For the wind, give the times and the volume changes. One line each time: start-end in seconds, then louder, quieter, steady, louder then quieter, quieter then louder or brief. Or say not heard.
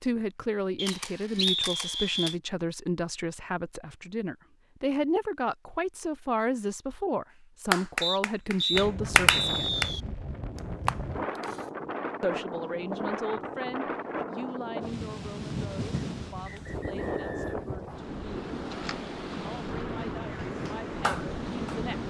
8.7-22.0 steady.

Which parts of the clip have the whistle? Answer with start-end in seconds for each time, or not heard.
0.8-2.4, 8.0-10.0, 15.9-17.5.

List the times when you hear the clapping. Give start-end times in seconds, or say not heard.
7.7-9.9, 20.6-21.9.